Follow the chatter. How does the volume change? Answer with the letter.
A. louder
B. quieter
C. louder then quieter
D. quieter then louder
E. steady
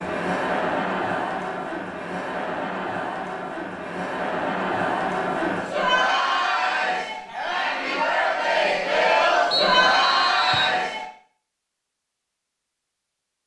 A.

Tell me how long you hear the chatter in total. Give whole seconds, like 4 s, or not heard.
11 s.